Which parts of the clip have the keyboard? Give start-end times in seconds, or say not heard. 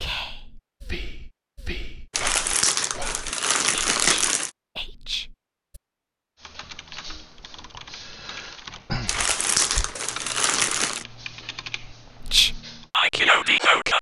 6.3-12.9.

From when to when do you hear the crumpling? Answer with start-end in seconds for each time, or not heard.
2.1-4.5, 9.1-11.1.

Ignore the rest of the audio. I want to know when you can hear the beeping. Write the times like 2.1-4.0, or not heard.
not heard.